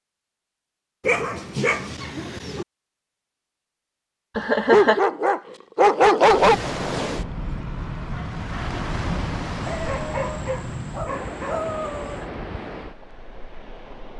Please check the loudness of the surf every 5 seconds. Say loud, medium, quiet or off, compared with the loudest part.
off, loud, medium.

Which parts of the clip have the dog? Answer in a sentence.
You can hear the dog from 1.1 to 2.6 s, from 4.7 to 6.5 s and from 9.7 to 12.2 s.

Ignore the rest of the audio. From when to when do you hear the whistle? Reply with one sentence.
The whistle can't be heard in this clip.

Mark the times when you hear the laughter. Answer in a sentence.
The laughter can be heard from 4.3 to 5.0 s.